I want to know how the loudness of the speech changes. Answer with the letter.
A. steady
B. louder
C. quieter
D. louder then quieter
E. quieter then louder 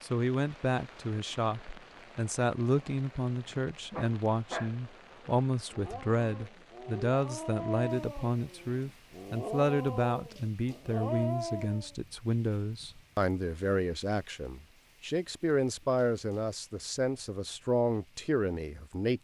A.